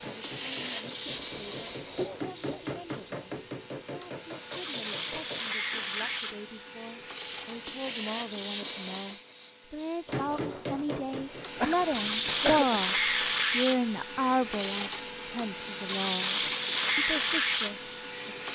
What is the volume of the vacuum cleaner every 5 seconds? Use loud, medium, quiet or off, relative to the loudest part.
medium, medium, loud, loud.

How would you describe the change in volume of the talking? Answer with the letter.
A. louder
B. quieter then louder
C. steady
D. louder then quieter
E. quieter
D.